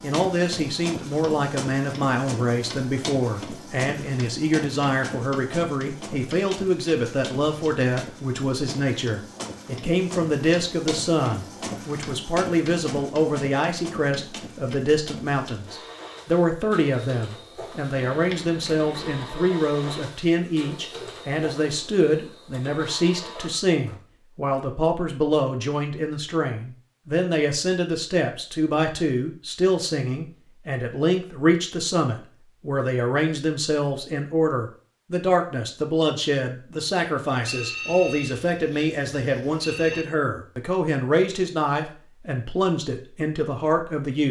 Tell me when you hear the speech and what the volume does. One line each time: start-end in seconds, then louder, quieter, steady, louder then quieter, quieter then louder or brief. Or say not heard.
0.0-44.2 steady.